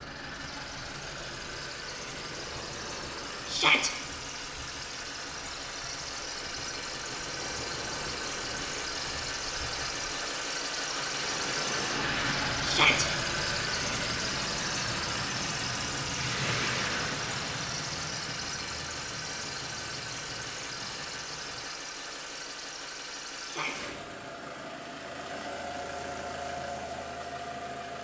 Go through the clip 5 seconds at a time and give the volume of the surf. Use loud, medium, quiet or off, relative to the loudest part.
medium, medium, loud, loud, medium, off.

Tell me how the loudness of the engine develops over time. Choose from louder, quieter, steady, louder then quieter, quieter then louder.
louder then quieter.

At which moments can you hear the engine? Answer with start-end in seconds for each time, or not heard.
0.0-27.9.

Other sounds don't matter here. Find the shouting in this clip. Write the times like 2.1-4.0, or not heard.
3.5-3.9, 12.6-13.1, 23.4-23.9.